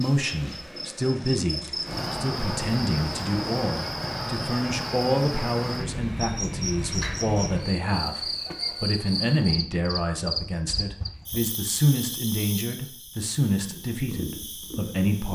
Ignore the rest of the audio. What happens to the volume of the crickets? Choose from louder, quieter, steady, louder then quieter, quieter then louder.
quieter.